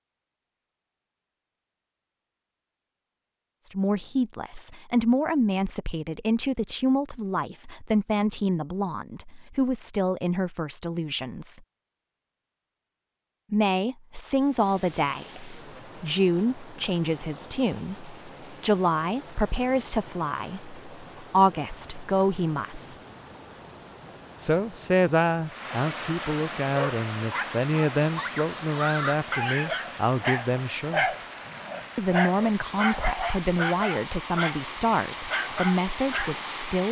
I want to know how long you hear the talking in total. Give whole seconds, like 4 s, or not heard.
29 s.